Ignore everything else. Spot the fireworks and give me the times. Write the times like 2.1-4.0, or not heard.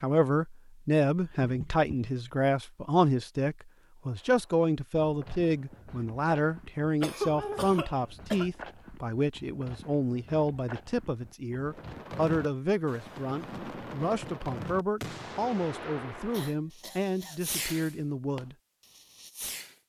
11.7-19.8.